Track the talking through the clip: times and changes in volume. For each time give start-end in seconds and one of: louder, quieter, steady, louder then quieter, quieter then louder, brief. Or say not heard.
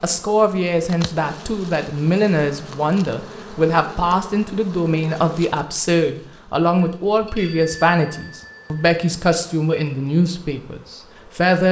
0.0-11.6 steady.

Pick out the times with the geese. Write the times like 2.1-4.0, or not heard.
not heard.